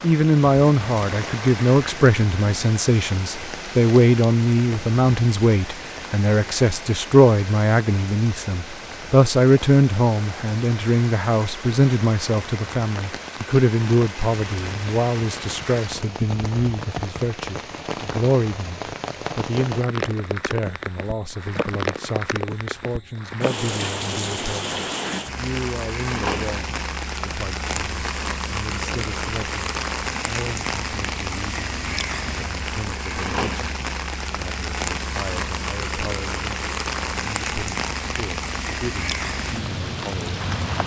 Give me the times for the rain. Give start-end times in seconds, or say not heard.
0.0-40.8.